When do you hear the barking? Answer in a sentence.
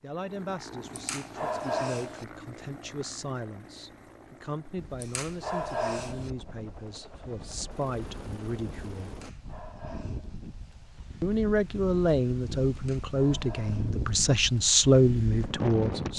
You can hear the barking from 0.9 to 2.2 s, from 5.0 to 6.3 s, from 9.1 to 10.4 s and from 12.8 to 14.0 s.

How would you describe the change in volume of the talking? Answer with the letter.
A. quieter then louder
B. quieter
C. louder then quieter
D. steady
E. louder
E.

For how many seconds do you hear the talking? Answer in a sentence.
You can hear the talking for 14 seconds altogether.